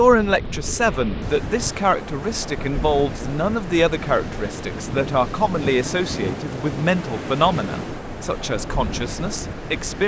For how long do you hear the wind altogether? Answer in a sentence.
You can hear the wind for 10 seconds altogether.